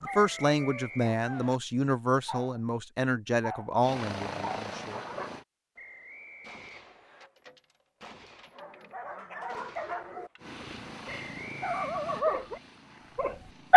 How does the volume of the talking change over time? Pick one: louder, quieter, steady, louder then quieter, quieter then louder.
steady.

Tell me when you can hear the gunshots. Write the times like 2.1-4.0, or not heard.
6.4-10.4.